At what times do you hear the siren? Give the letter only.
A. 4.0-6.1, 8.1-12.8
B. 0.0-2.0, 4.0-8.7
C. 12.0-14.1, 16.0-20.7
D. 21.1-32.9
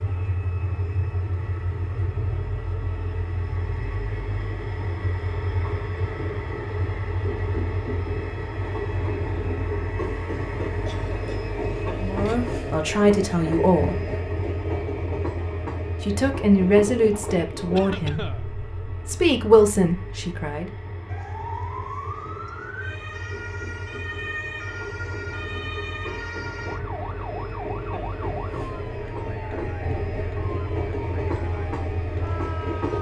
D.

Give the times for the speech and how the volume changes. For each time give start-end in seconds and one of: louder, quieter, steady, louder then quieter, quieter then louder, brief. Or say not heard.
12.0-14.1 brief
16.0-20.7 quieter then louder.